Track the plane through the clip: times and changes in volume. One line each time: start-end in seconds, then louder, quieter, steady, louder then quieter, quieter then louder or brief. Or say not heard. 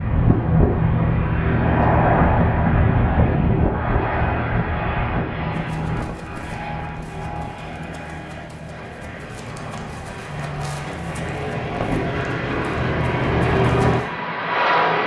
0.0-15.0 quieter then louder.